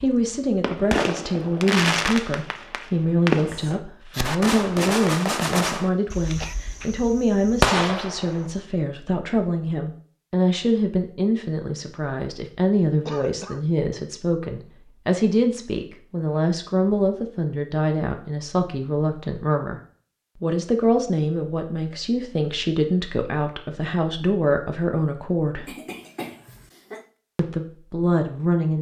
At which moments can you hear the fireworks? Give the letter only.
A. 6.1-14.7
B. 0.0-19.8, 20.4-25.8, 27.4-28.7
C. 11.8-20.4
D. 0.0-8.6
D.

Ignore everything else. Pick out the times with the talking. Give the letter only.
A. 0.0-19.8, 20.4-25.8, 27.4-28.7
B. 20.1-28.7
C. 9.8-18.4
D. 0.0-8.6
A.